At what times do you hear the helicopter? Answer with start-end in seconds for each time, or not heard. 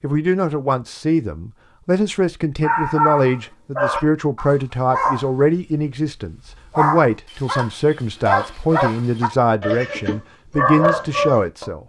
not heard.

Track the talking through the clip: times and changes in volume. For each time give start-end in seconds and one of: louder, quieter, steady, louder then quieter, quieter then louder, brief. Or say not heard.
0.0-11.8 steady.